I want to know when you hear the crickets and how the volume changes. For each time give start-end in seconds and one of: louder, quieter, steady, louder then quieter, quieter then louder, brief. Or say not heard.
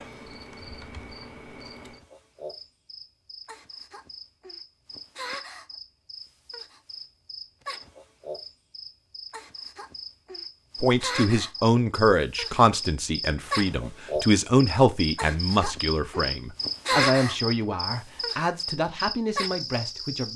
0.0-20.3 louder.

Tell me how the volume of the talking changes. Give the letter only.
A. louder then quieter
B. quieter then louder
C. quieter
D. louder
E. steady
C.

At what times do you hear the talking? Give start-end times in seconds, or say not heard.
10.8-20.3.